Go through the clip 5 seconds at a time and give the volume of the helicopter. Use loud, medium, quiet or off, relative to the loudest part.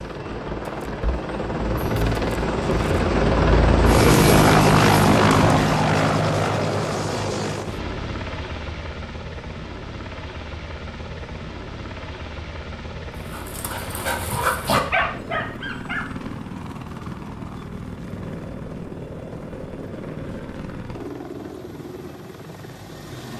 loud, loud, quiet, quiet, quiet.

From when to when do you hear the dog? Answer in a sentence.
The dog can be heard from 13.2 to 16.1 s.